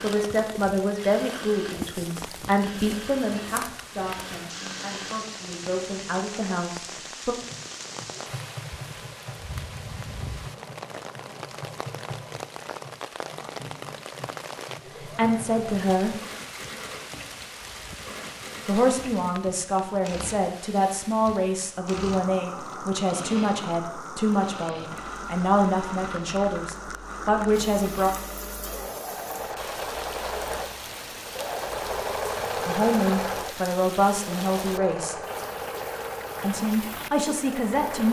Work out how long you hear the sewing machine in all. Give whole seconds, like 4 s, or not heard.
38 s.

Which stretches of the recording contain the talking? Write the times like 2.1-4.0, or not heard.
0.0-7.3, 15.0-16.2, 18.6-28.1, 32.6-35.1, 36.4-38.0.